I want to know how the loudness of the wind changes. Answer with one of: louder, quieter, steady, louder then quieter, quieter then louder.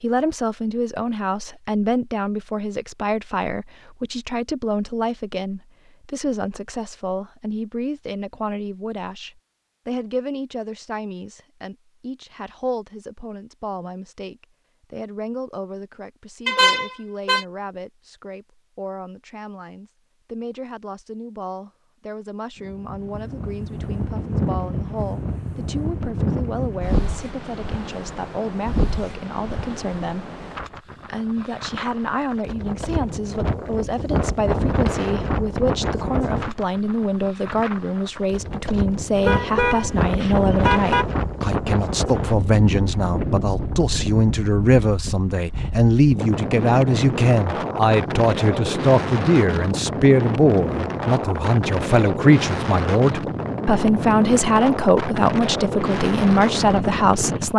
steady.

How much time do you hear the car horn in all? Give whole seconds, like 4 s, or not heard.
3 s.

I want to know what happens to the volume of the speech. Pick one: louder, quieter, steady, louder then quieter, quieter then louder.
quieter then louder.